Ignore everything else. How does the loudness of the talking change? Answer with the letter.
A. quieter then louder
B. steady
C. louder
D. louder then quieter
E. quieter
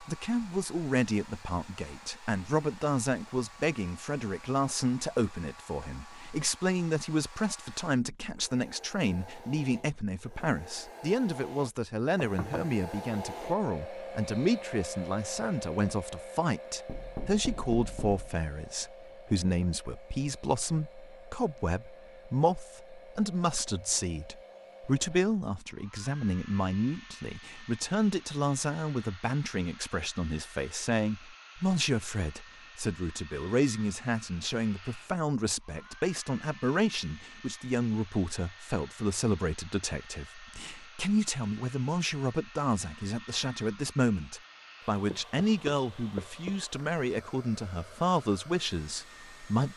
B.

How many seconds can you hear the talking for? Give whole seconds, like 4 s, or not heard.
50 s.